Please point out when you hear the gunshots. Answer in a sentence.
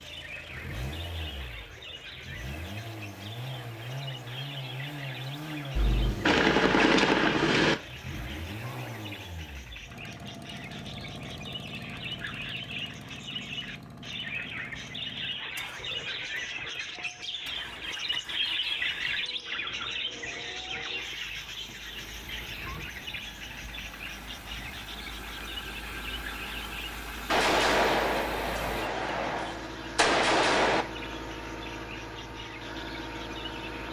You can hear the gunshots from 5.8 to 7.8 s and from 27.2 to 30.9 s.